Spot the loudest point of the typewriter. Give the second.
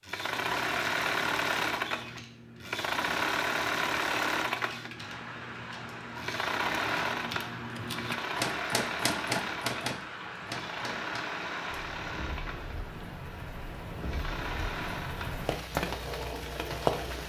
9 s.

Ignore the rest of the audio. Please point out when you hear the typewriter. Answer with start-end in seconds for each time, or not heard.
0.1-11.4.